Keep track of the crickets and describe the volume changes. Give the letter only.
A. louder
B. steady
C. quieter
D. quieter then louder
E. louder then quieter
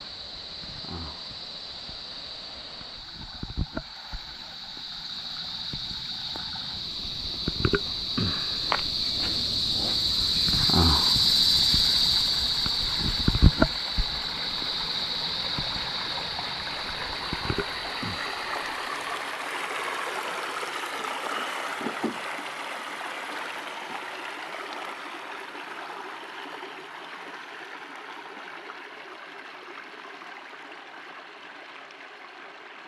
E.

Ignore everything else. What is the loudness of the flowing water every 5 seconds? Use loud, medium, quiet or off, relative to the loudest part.
quiet, quiet, medium, loud, loud, medium, medium.